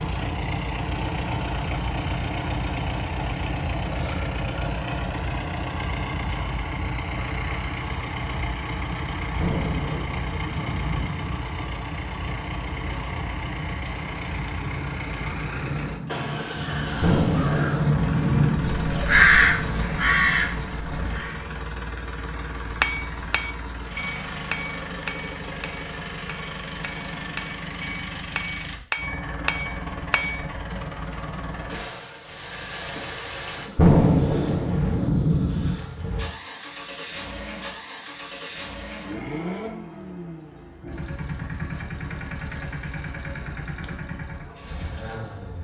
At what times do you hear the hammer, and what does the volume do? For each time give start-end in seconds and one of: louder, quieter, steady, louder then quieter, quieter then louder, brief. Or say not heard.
22.6-30.6 quieter then louder.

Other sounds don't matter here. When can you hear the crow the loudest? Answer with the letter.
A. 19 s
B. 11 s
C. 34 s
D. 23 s
A.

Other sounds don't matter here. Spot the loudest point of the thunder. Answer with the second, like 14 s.
34 s.